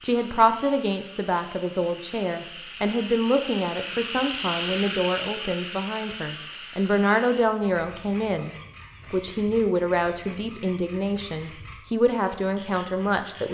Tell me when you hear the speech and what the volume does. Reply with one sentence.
You can hear the speech from 0.0 to 13.4 s, at a steady volume.